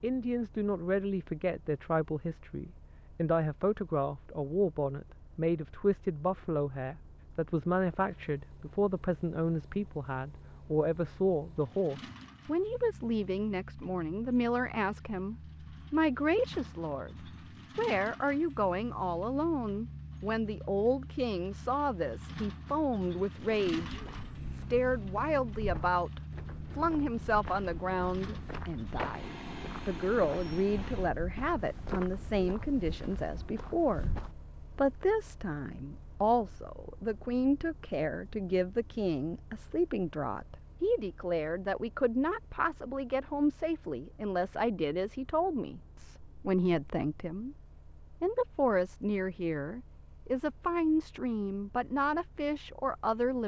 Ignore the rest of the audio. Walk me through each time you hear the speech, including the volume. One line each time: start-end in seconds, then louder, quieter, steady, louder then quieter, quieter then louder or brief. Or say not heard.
0.0-53.4 steady.